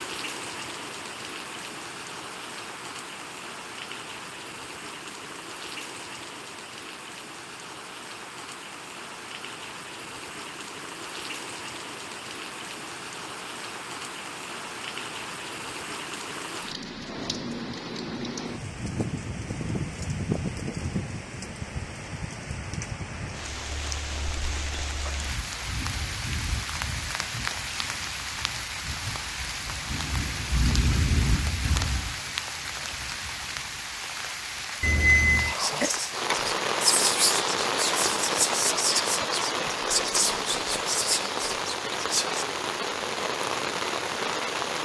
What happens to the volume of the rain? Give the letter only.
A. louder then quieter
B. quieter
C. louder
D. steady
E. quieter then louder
C.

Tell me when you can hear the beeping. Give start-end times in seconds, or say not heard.
34.8-35.5.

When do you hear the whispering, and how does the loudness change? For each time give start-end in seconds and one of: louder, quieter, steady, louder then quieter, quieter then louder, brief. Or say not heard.
35.4-42.5 steady.